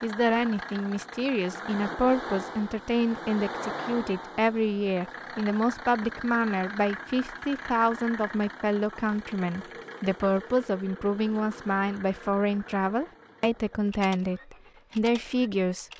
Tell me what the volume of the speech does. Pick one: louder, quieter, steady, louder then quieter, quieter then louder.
steady.